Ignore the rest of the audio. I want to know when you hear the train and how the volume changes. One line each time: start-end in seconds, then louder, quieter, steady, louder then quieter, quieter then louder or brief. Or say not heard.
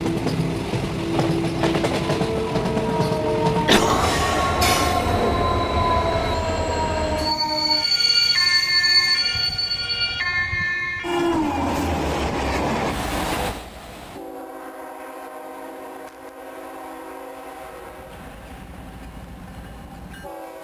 0.0-20.5 quieter.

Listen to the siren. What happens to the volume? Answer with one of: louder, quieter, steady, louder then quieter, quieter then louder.
steady.